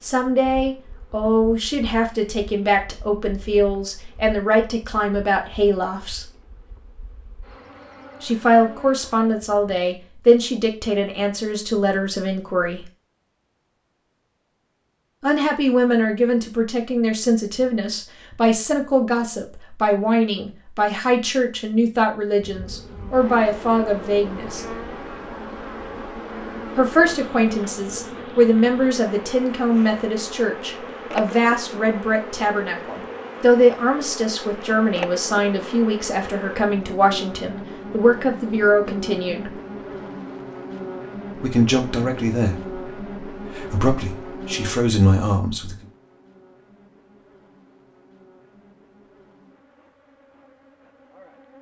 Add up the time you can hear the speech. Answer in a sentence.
The speech can be heard for 38 seconds in total.